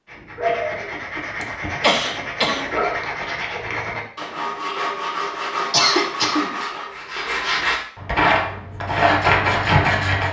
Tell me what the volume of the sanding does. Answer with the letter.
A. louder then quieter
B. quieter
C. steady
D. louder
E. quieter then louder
D.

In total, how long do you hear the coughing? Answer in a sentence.
You can hear the coughing for 3 seconds altogether.